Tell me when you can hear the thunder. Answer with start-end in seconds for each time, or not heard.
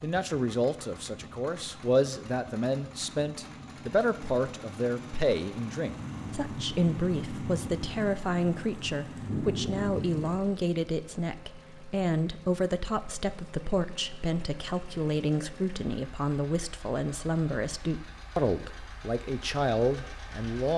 5.8-10.4.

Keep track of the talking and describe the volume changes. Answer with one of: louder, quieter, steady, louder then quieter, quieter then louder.
steady.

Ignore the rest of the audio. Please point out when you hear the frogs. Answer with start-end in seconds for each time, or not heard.
not heard.